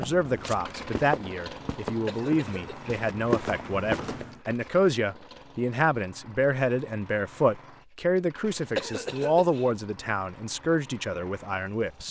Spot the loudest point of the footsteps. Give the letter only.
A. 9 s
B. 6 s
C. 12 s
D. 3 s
D.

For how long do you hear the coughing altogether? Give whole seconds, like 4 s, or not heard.
2 s.